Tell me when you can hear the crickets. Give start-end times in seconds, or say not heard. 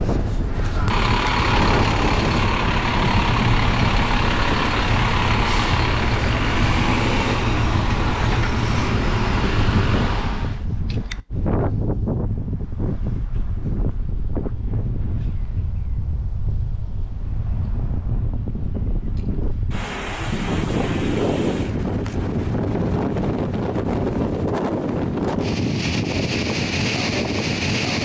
not heard.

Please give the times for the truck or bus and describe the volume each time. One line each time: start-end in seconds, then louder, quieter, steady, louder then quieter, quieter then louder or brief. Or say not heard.
0.0-10.7 steady.